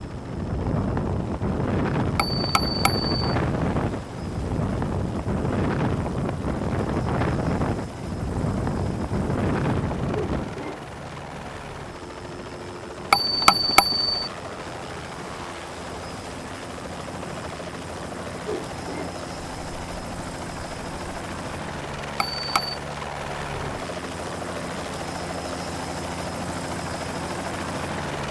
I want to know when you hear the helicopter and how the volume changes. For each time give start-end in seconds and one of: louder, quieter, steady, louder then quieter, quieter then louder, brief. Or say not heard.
0.0-28.2 louder.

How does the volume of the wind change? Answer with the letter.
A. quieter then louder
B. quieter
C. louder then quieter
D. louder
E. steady
B.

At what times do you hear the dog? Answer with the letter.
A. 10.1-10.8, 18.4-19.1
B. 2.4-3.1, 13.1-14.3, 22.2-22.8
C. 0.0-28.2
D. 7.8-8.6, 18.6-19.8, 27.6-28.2
A.